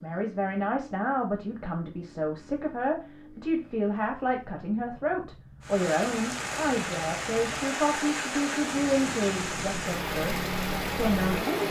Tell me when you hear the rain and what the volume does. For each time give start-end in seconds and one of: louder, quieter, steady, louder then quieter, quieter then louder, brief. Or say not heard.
5.6-11.6 steady.